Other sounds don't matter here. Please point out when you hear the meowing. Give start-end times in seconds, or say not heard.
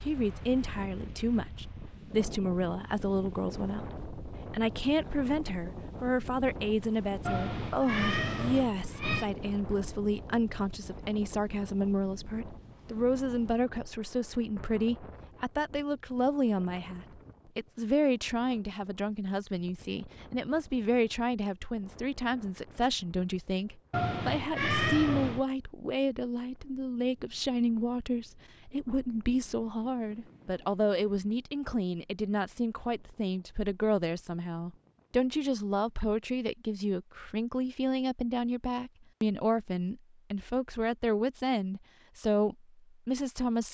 7.2-9.2, 23.9-25.4.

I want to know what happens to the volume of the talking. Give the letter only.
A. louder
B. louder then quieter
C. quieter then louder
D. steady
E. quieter
D.